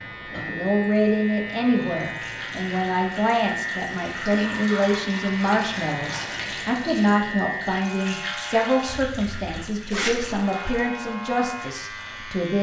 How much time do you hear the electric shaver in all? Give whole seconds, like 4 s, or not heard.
11 s.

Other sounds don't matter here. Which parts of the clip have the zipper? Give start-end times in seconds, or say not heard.
8.8-10.4.